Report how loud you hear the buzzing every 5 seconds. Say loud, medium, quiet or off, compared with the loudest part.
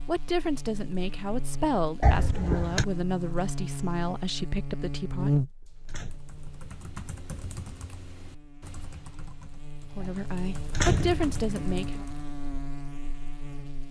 medium, loud, medium.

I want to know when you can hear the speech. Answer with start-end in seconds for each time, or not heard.
0.1-5.4, 9.9-12.1.